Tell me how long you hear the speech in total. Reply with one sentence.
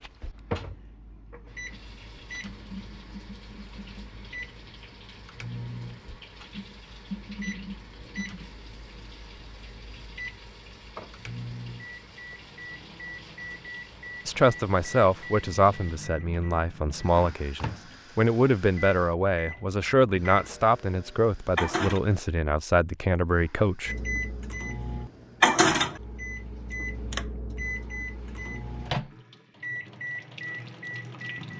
You can hear the speech for 10 seconds altogether.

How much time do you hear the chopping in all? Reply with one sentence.
You can't hear the chopping here.